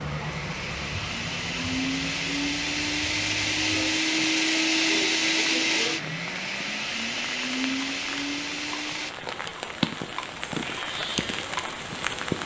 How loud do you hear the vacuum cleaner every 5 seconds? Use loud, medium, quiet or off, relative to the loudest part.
loud, loud, off.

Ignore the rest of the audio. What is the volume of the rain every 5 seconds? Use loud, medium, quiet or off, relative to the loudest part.
medium, medium, loud.